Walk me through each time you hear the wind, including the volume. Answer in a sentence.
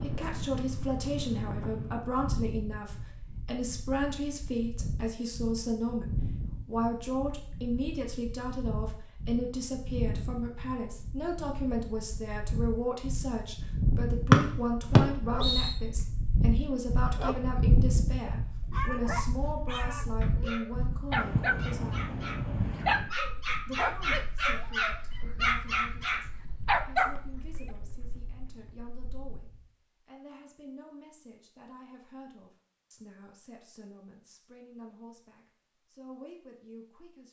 You can hear the wind from 0.0 to 29.6 s, getting louder then quieter.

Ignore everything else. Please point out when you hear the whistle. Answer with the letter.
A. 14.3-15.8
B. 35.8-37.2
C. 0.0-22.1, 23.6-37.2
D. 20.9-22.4
A.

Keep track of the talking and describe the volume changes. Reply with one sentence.
The volume of the talking goes down.